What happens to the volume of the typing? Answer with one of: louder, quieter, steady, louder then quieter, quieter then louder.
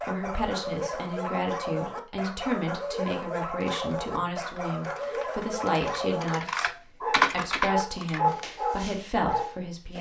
louder then quieter.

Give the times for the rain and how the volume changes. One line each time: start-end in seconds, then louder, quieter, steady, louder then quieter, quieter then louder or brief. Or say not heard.
not heard.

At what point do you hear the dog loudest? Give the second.
8 s.